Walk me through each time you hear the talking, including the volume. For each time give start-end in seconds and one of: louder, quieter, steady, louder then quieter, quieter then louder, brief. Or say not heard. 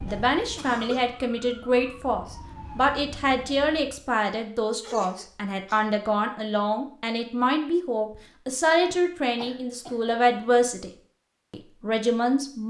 0.0-10.9 steady
11.5-12.6 brief.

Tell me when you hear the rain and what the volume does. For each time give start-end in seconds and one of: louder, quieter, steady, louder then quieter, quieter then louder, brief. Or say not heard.
not heard.